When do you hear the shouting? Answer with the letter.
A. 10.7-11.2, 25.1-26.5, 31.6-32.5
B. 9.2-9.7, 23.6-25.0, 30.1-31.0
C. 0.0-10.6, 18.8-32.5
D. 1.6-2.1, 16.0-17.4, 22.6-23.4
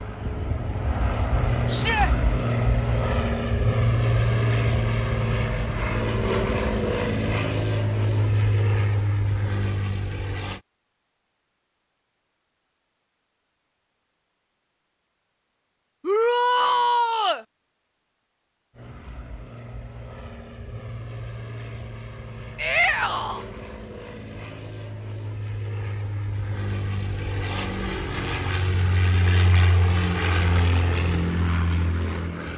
D.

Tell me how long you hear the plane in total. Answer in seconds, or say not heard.
24 s.